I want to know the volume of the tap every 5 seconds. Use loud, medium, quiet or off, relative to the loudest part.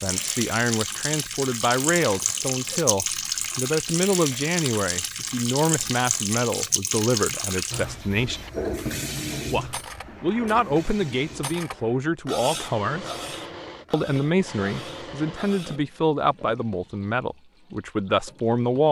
loud, loud, quiet, quiet.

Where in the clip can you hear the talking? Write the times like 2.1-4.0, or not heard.
0.0-8.4, 9.5-13.1, 13.9-18.8.